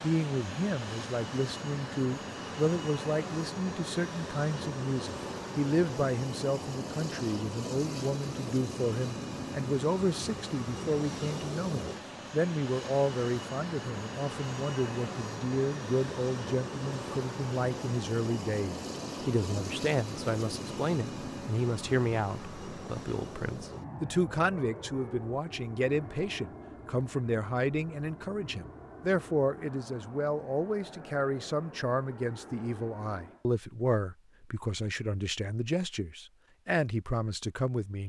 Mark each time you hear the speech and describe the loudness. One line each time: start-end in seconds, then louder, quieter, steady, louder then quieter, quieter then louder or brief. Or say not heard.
0.0-38.0 steady.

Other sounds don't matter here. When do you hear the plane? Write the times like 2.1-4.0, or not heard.
0.0-33.5.